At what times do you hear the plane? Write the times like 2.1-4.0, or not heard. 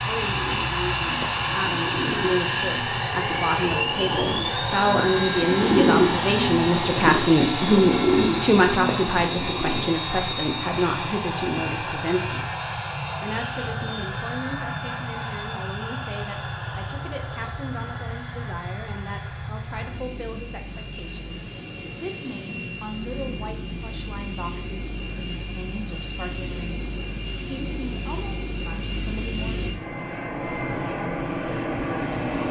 0.0-32.4.